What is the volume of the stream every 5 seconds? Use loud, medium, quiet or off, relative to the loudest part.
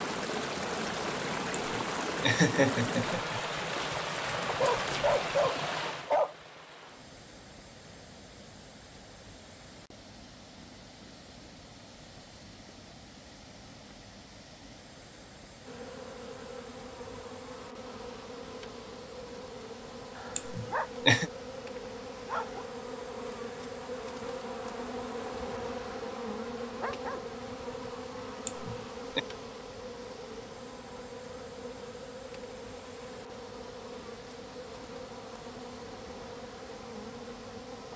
loud, medium, quiet, quiet, quiet, quiet, quiet, quiet.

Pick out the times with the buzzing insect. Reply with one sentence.
The buzzing insect can be heard from 15.7 to 37.9 s.